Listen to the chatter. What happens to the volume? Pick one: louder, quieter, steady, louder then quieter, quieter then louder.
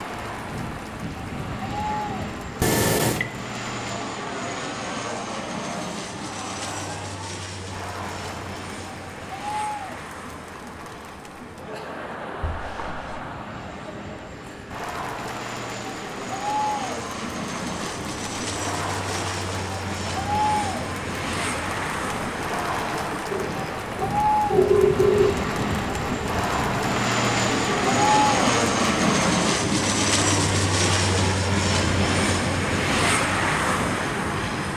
louder.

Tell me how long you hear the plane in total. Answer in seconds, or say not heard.
35 s.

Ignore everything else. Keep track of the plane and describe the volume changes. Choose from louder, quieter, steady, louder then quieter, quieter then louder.
quieter then louder.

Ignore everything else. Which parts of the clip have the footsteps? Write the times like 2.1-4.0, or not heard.
not heard.